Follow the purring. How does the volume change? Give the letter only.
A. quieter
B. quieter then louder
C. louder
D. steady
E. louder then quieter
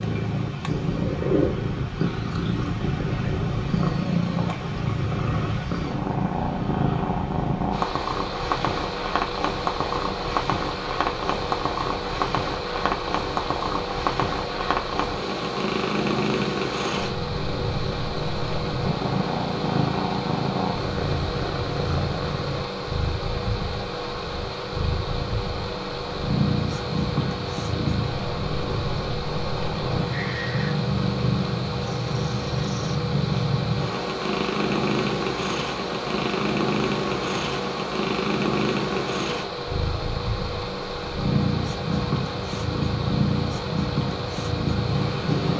D.